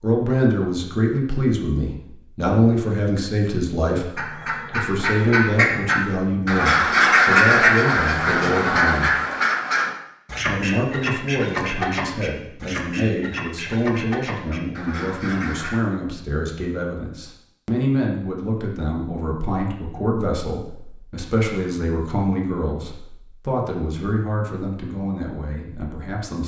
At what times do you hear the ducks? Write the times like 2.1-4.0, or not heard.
4.2-15.8.